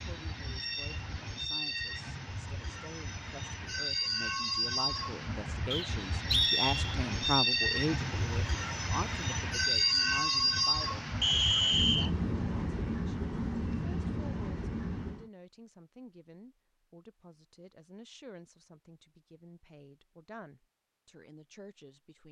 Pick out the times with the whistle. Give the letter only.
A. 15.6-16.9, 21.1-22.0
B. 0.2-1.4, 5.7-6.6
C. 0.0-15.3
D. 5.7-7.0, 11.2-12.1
D.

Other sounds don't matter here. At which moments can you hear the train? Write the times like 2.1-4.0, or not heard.
0.0-15.3.